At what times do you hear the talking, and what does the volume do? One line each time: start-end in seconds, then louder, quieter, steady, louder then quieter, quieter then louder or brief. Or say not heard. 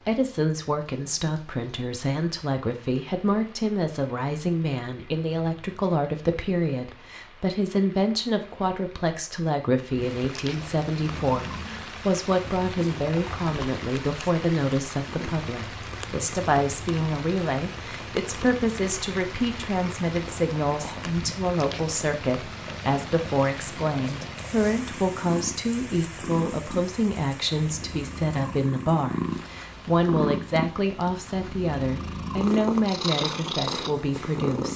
0.1-34.7 steady.